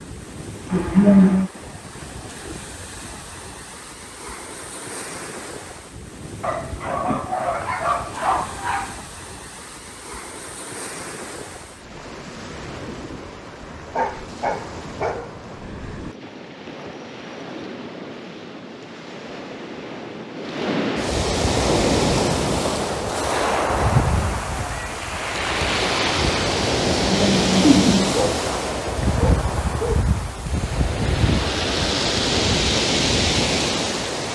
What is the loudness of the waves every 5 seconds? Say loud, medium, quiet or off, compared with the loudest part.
quiet, quiet, quiet, quiet, loud, loud, loud.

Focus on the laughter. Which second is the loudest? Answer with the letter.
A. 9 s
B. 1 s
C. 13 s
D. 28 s
B.